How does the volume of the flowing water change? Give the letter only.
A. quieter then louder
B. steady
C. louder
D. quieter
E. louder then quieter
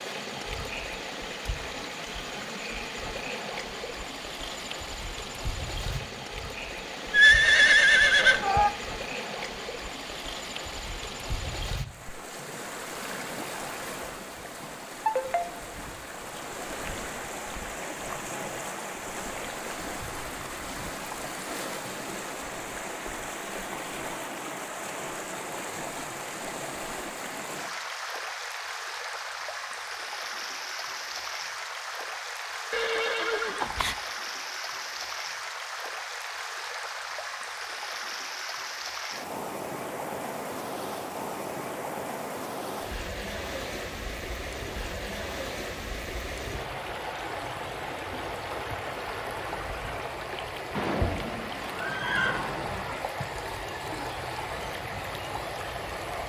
B.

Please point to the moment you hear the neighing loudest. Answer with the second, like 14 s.
7 s.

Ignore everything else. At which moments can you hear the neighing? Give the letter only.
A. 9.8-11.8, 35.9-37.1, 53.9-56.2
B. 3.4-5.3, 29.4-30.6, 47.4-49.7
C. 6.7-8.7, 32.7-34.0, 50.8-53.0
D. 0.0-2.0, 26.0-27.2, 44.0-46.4
C.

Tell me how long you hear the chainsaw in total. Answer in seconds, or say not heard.
not heard.